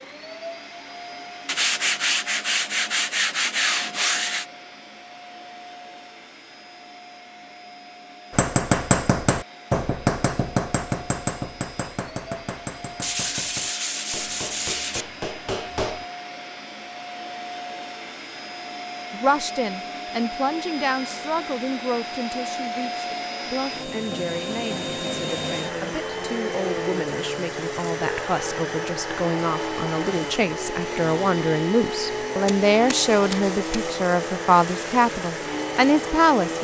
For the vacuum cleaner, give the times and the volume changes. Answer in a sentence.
You can hear the vacuum cleaner from 0.0 to 36.5 s, getting louder.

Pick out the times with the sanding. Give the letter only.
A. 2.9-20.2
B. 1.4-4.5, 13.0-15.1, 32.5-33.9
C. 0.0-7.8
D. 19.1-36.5
B.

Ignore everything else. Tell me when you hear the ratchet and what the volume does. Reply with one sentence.
You can't hear the ratchet here.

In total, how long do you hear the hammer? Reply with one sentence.
The hammer can be heard for 8 seconds in total.